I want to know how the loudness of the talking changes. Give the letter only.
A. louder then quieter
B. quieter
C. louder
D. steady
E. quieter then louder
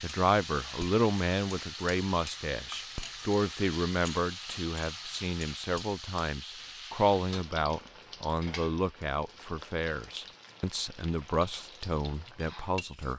D.